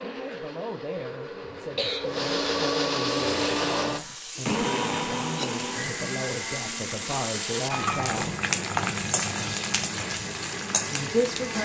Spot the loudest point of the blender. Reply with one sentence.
The loudest moment of the blender is at 3 seconds.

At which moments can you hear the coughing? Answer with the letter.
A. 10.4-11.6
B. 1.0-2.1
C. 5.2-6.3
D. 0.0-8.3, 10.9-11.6
B.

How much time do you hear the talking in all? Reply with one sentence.
The talking can be heard for 9 seconds in total.